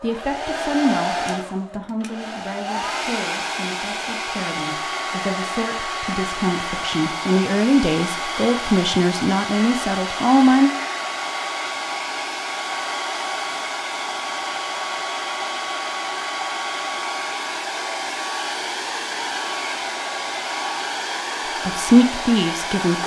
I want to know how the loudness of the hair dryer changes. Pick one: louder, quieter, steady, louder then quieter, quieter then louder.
steady.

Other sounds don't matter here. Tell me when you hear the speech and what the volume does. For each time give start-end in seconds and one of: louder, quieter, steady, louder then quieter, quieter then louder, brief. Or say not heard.
0.0-10.7 quieter then louder
21.6-23.0 brief.